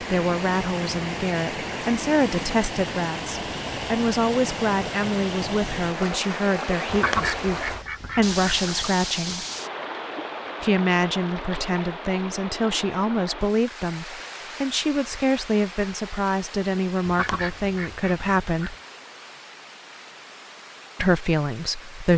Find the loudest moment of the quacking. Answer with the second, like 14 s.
7 s.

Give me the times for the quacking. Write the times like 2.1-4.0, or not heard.
6.8-8.8, 17.1-18.7.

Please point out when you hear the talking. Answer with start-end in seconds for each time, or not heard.
0.0-9.4, 10.6-18.8, 20.9-22.1.